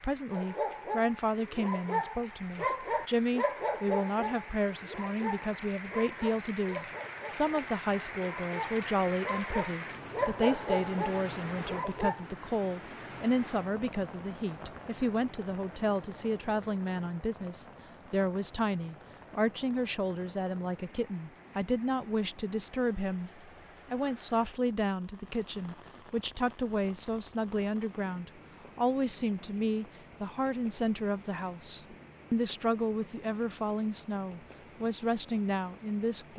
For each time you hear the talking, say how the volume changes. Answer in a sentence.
You can hear the talking from 0.0 to 36.3 s, at a steady volume.